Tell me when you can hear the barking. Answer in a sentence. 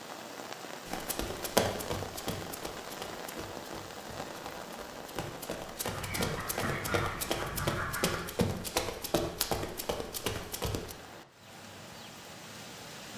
You can't hear the barking here.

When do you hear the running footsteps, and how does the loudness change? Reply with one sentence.
The running footsteps can be heard from 0.8 to 10.9 s, getting quieter then louder.